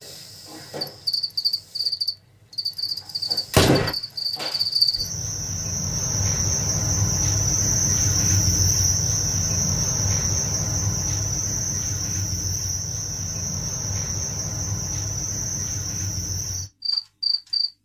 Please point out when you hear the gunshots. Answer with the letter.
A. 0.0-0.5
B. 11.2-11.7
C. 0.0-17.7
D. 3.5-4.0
D.